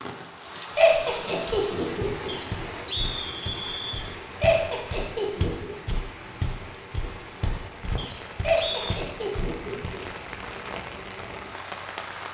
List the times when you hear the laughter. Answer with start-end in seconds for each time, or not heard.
0.8-2.4, 4.4-5.7, 8.4-10.0.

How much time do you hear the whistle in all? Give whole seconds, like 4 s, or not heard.
3 s.